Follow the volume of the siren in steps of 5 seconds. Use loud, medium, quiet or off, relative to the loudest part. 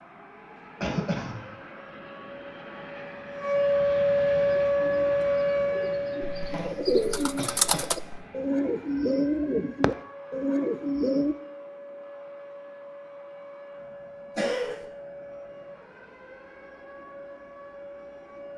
loud, loud, quiet, quiet.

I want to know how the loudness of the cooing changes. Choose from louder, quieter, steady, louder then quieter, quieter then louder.
louder.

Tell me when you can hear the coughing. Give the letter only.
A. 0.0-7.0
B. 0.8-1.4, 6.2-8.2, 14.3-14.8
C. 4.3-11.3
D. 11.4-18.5
B.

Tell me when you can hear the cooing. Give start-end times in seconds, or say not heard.
4.3-11.3.